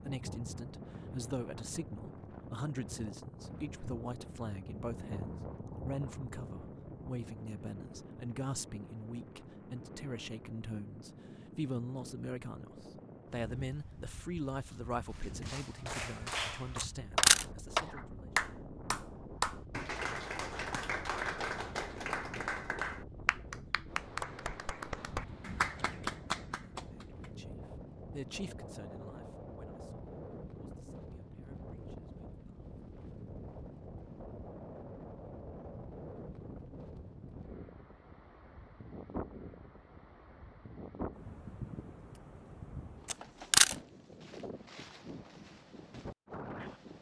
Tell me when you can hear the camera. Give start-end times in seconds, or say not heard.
16.8-17.4, 43.1-43.8.